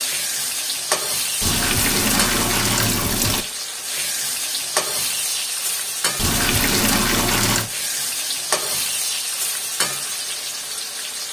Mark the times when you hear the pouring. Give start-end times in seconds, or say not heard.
1.4-3.5, 6.2-7.7.